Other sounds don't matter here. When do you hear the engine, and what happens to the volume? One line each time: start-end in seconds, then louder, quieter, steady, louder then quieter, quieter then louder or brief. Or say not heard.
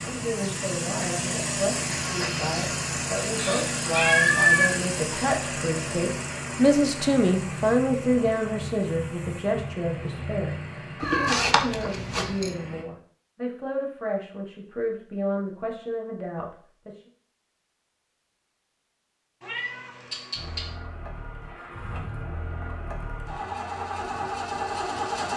0.0-12.8 quieter
20.4-25.3 louder.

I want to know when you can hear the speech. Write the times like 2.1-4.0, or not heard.
0.0-17.0.